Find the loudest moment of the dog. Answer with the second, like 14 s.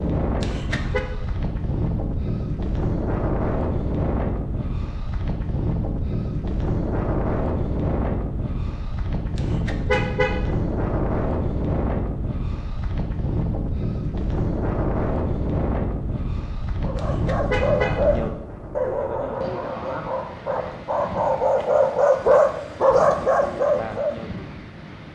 22 s.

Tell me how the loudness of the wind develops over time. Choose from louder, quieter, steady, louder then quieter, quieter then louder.
quieter.